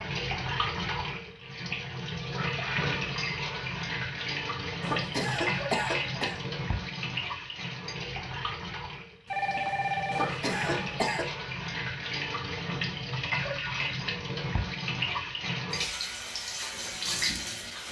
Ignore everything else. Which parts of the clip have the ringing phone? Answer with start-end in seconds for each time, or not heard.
9.2-10.4.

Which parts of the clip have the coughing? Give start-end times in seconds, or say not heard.
4.8-6.4, 10.1-11.2.